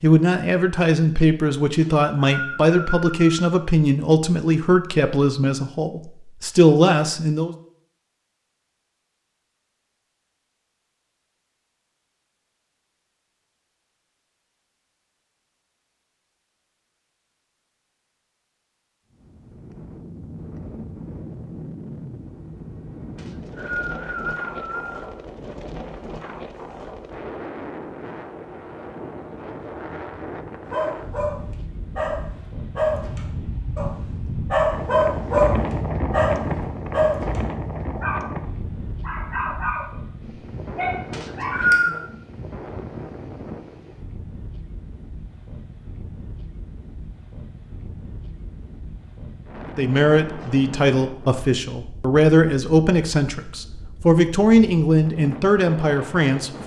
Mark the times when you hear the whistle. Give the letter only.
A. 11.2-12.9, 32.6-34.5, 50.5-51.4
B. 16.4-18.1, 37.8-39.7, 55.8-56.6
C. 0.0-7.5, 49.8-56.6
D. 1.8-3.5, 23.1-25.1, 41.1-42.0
D.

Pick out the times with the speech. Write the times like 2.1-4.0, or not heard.
0.0-7.5, 49.8-56.6.